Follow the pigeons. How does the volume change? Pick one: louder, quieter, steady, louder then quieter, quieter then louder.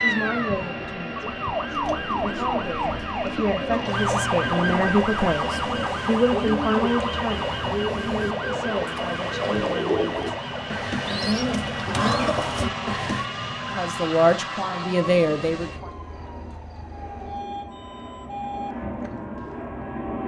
louder.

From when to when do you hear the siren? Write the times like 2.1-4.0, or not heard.
0.0-20.2.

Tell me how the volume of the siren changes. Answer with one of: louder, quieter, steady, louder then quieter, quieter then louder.
quieter.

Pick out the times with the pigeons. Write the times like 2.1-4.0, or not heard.
1.7-13.3.